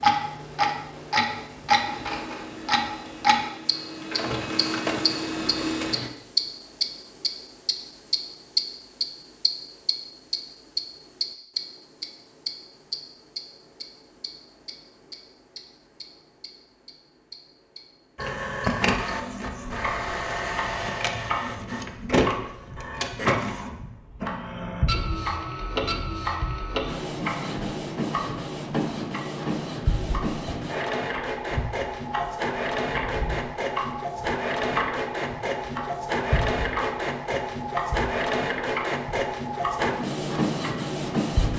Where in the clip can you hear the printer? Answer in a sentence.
You can hear the printer from 0.0 to 6.1 s and from 18.1 to 41.5 s.